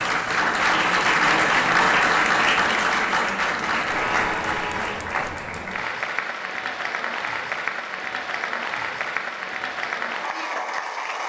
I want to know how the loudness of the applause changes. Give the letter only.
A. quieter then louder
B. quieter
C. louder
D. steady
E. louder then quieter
B.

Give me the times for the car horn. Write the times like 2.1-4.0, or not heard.
3.6-5.1.